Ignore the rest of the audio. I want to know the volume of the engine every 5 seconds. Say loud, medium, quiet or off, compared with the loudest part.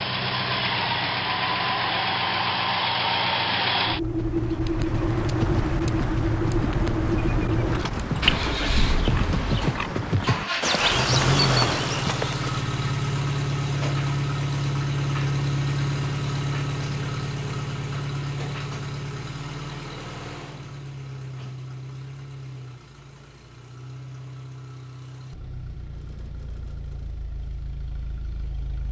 loud, loud, loud, loud, quiet, quiet.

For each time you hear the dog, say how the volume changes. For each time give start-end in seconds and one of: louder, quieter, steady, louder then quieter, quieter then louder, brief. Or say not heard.
not heard.